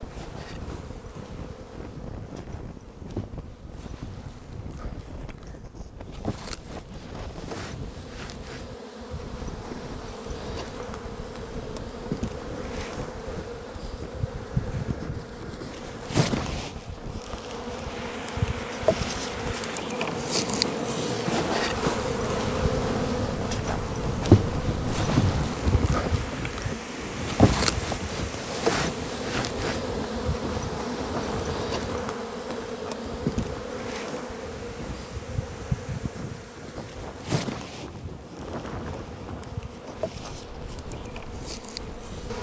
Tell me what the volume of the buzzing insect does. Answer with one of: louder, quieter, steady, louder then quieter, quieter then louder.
louder then quieter.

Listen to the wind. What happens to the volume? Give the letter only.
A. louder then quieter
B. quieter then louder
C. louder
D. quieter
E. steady
A.